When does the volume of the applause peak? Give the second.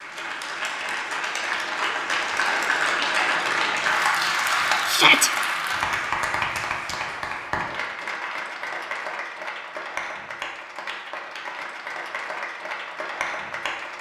4 s.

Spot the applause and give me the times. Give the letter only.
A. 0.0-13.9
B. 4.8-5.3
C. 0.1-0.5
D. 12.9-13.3
A.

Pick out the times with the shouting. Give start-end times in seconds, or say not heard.
4.8-5.3.